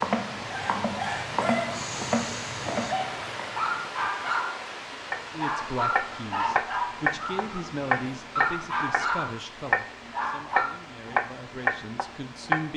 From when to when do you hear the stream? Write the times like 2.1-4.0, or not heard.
0.0-12.7.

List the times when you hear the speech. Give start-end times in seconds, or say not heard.
5.3-12.7.